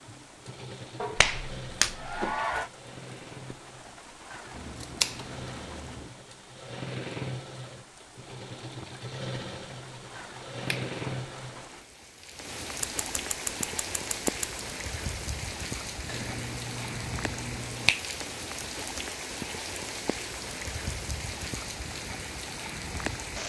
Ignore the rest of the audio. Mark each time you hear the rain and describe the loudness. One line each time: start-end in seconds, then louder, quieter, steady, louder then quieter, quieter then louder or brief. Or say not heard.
0.0-23.4 louder.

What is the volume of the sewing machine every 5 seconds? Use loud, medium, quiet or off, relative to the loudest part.
medium, loud, loud, off, off.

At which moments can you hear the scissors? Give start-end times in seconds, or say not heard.
4.5-6.1, 12.8-14.6.